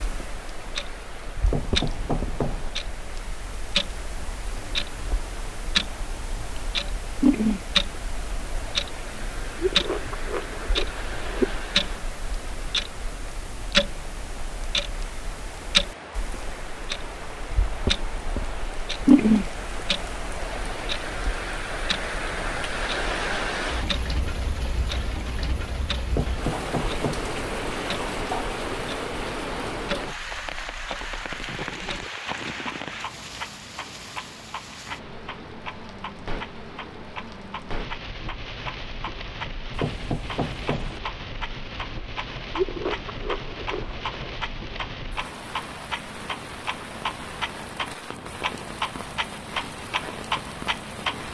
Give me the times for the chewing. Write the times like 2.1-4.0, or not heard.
9.6-11.6, 42.5-44.4.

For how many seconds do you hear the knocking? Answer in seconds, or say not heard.
4 s.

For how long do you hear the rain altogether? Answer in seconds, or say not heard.
51 s.